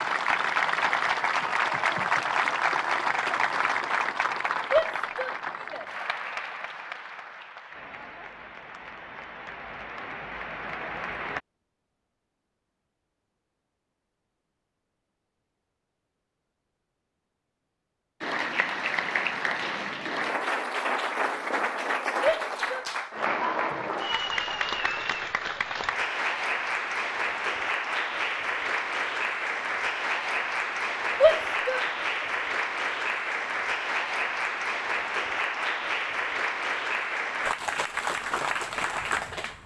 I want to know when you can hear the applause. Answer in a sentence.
You can hear the applause from 0.0 to 11.4 s and from 18.2 to 39.6 s.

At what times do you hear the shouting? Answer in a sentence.
The shouting can be heard from 4.7 to 5.8 s, from 22.2 to 22.9 s and from 31.2 to 31.9 s.